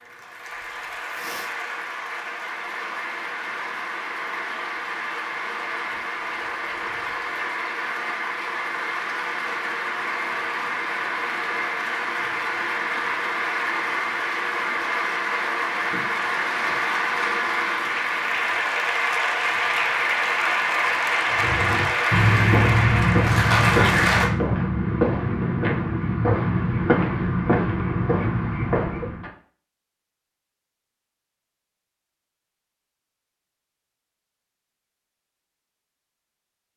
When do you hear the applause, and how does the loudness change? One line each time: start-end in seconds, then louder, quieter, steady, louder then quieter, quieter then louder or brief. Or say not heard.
0.0-24.3 louder.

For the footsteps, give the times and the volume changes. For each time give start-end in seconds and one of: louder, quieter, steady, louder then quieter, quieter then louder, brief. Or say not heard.
21.3-29.3 steady.